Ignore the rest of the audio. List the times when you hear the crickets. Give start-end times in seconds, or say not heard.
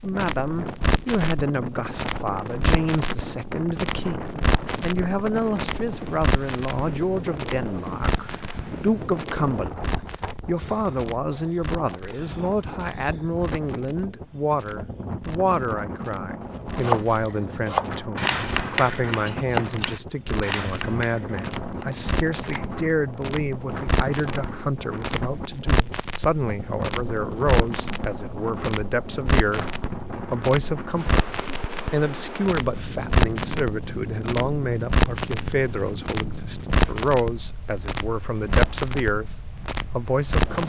not heard.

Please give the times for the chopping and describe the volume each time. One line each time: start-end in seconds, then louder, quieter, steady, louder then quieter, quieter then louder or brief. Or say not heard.
16.5-22.8 quieter.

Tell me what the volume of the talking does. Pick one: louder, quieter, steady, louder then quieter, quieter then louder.
steady.